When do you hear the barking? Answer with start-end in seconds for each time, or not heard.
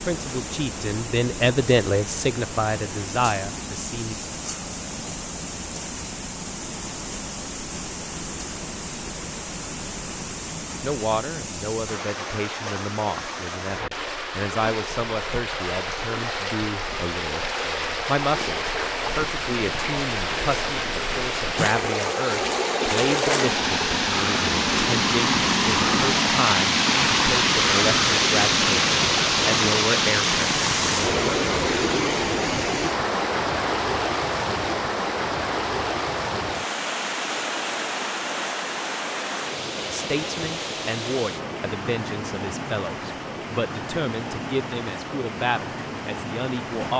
not heard.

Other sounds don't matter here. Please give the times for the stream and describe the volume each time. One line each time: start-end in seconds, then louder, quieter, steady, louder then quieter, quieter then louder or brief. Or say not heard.
0.0-46.9 louder then quieter.